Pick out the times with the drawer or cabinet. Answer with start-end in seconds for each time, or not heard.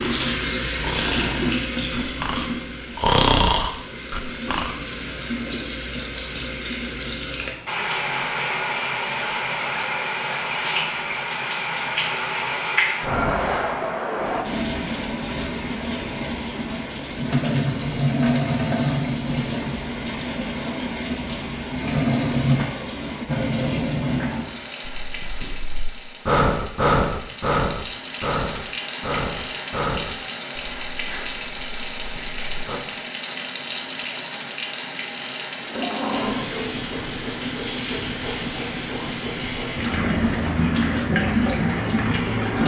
35.6-36.5.